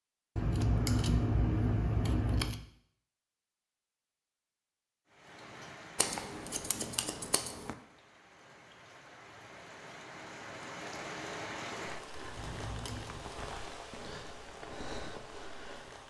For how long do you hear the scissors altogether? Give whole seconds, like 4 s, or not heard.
5 s.